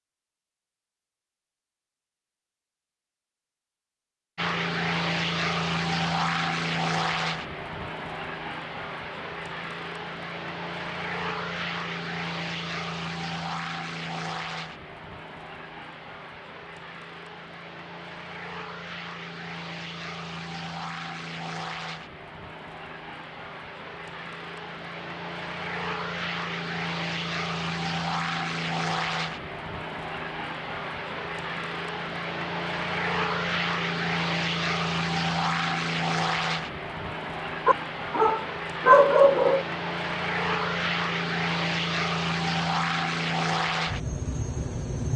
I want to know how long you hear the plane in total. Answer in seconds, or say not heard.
41 s.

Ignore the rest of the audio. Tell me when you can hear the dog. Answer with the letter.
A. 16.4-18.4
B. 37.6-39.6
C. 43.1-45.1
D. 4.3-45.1
B.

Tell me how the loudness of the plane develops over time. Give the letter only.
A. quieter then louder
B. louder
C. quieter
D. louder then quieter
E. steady
A.